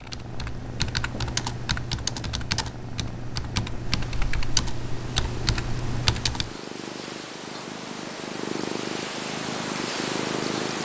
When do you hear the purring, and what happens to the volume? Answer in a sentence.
The purring can be heard from 0.0 to 10.7 s, getting louder.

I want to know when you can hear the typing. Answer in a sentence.
You can hear the typing from 0.0 to 6.5 s.